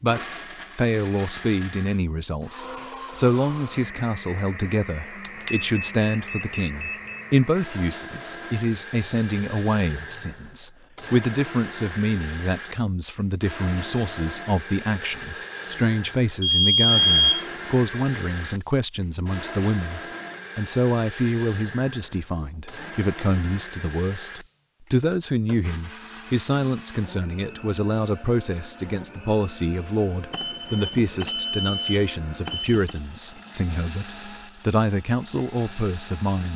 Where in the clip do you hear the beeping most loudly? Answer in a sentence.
The loudest moment of the beeping is at 17 seconds.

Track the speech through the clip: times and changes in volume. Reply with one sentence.
The speech can be heard briefly from 0.0 to 2.5 s; and from 3.1 to 36.5 s, at a steady volume.